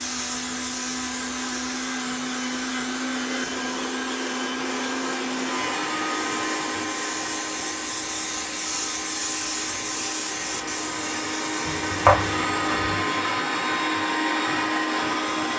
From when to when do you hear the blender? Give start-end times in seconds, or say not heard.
0.0-15.5.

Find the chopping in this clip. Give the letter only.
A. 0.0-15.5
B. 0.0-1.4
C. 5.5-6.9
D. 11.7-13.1
D.